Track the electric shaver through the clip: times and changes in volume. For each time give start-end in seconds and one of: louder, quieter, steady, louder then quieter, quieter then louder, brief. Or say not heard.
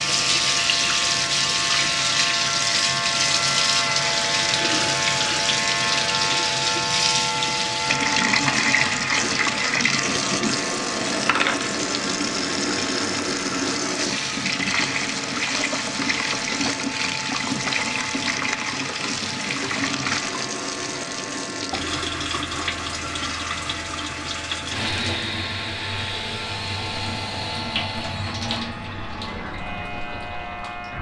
0.0-30.9 quieter.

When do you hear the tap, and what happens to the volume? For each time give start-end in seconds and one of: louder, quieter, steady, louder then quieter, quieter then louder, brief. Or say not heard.
0.0-30.9 quieter.